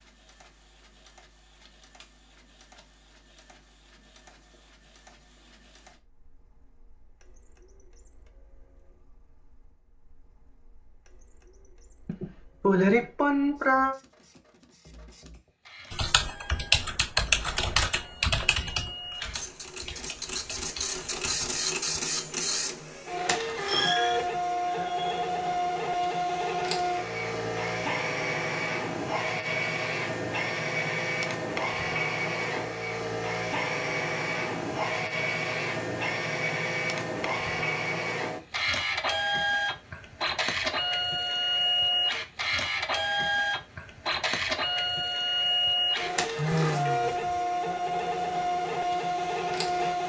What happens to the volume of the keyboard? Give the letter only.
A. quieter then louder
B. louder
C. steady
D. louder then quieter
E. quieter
E.